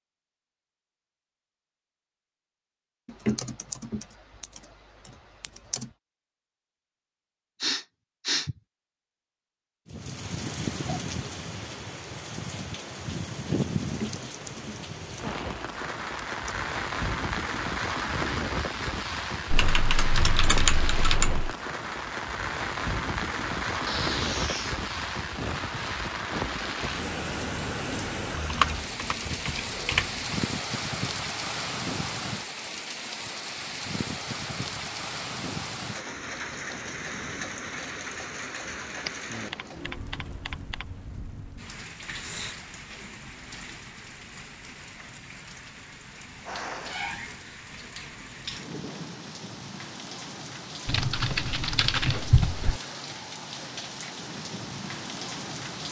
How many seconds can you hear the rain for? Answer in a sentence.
You can hear the rain for 46 seconds altogether.